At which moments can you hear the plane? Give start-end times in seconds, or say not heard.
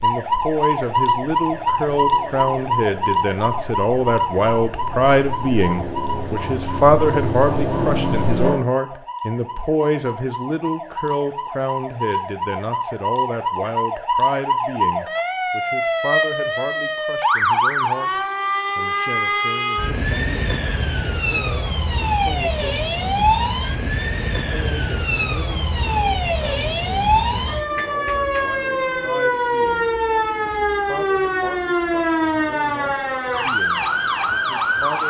0.1-8.6.